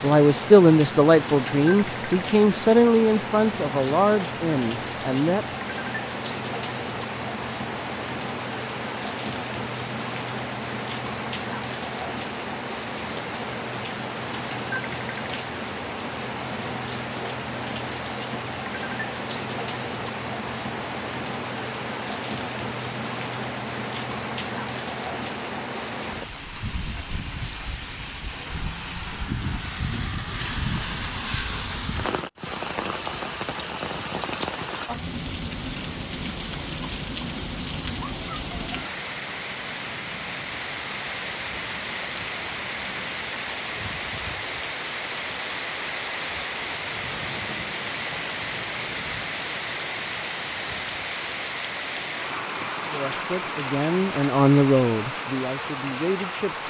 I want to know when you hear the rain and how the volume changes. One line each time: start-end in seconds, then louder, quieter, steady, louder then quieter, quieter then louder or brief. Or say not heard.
0.0-56.6 steady.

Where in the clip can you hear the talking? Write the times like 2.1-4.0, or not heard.
0.0-5.5, 52.9-56.6.